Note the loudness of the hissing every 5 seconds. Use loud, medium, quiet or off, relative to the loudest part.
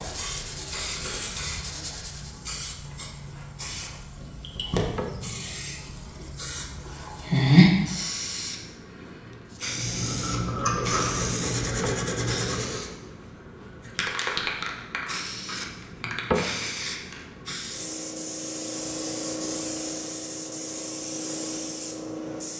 medium, loud, medium, medium, medium.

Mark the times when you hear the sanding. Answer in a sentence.
You can hear the sanding from 0.0 to 2.4 s and from 9.5 to 12.9 s.